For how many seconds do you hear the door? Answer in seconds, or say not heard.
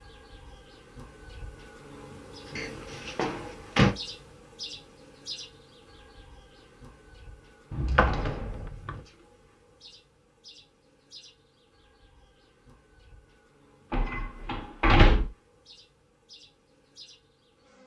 4 s.